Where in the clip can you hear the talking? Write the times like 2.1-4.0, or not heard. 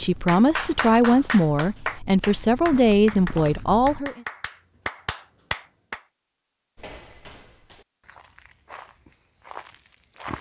0.0-4.2.